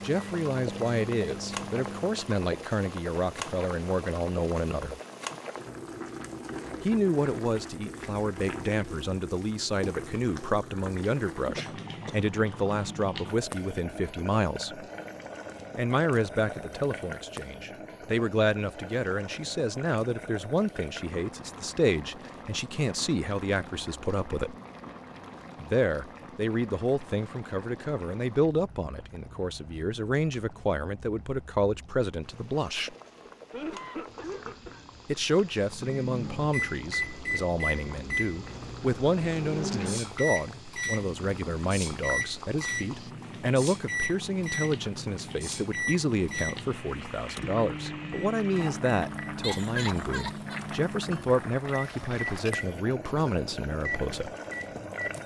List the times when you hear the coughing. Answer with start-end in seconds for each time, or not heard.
11.6-12.2, 32.3-34.9, 49.4-50.6.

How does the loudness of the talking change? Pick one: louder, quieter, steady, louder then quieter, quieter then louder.
steady.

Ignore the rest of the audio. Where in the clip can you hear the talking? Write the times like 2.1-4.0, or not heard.
0.0-5.0, 6.8-14.8, 15.8-24.6, 25.6-33.0, 35.0-54.3.